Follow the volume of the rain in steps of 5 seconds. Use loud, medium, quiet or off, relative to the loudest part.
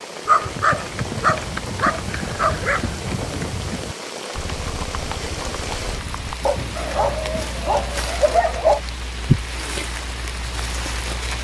medium, loud, loud.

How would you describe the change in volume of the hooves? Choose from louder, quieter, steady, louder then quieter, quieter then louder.
quieter.